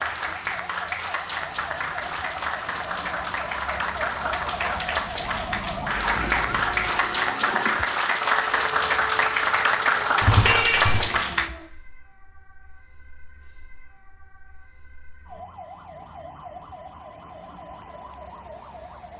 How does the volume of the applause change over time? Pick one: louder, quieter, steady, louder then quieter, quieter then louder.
louder.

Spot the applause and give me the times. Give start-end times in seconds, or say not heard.
0.0-11.5.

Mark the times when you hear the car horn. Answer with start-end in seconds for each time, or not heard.
10.2-11.0.